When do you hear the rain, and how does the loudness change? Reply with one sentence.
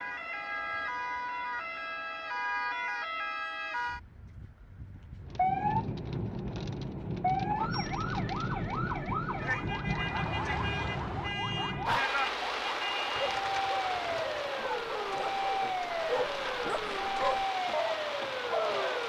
You can hear the rain from 5.2 to 19.0 s, at a steady volume.